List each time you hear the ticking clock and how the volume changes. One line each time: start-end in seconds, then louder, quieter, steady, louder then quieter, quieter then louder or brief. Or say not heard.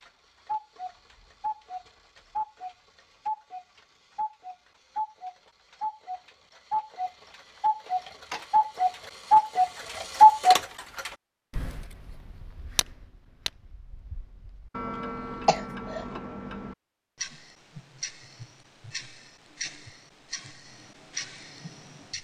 0.0-22.1 louder then quieter.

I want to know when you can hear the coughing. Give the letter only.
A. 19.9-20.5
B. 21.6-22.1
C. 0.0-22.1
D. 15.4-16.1
D.